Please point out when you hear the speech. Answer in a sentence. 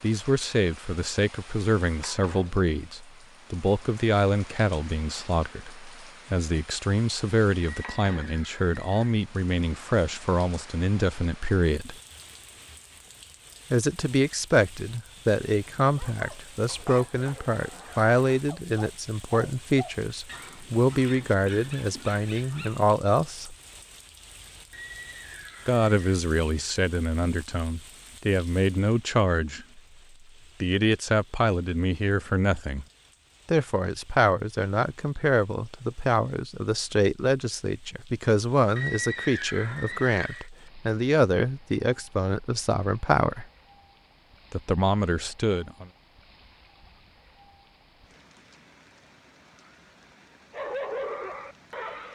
The speech can be heard from 0.0 to 11.9 s, from 13.7 to 23.6 s, from 25.6 to 29.8 s, from 30.6 to 32.9 s, from 33.5 to 43.5 s and from 44.5 to 45.9 s.